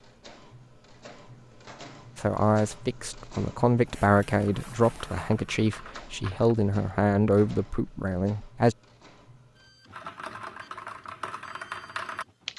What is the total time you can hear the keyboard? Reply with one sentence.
The keyboard can be heard for 5 seconds in total.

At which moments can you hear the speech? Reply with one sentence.
The speech can be heard from 2.1 to 8.8 s.